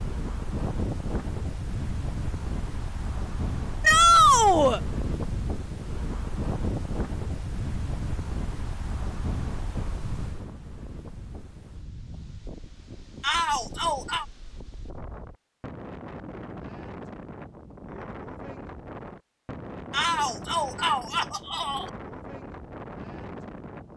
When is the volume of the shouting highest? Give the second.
4 s.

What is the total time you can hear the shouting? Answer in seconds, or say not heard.
4 s.